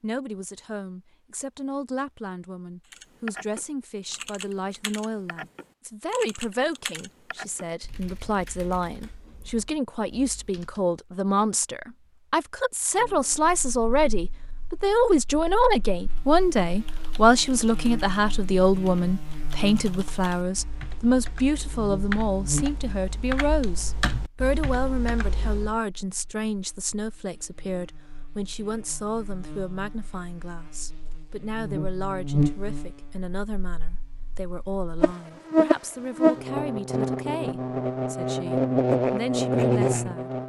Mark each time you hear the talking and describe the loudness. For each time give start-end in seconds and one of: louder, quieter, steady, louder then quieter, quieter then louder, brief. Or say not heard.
0.0-40.3 louder then quieter.